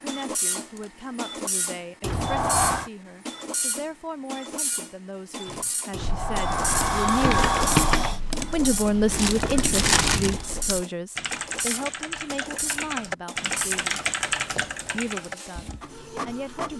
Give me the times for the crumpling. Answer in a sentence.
You can hear the crumpling from 9.1 to 10.4 s.